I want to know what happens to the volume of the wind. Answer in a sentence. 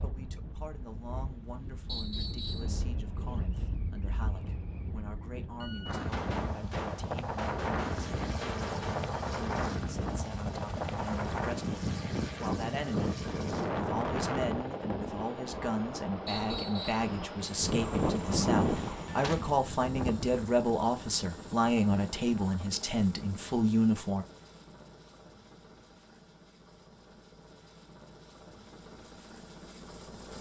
The volume of the wind goes up.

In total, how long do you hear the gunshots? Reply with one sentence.
You can hear the gunshots for 4 seconds altogether.